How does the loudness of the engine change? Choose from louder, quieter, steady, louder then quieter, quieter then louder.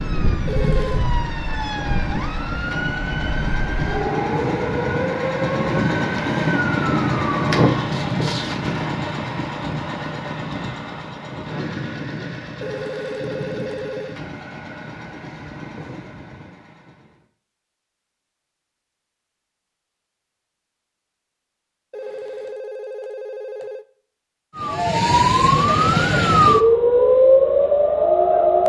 louder then quieter.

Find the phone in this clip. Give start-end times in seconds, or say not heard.
0.5-1.1, 12.6-14.2, 21.9-23.9.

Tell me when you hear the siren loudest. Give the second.
27 s.